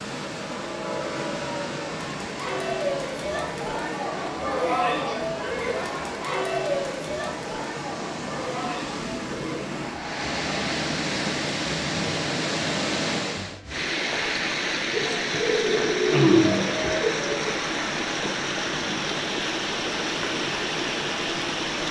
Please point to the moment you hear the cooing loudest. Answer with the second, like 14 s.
16 s.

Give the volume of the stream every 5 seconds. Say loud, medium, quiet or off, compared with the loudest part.
medium, medium, loud, loud, loud.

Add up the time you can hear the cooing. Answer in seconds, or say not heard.
3 s.